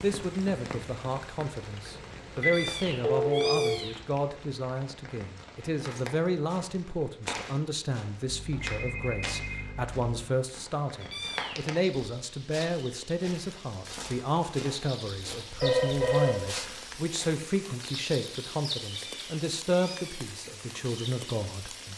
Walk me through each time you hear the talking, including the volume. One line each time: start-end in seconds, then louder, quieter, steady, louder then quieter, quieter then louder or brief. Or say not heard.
0.0-21.9 steady.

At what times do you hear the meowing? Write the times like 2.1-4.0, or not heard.
2.4-4.0, 11.0-11.6, 19.1-20.3.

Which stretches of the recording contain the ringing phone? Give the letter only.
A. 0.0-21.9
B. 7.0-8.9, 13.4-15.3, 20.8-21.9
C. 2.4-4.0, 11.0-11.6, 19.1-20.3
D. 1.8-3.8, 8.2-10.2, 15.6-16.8
D.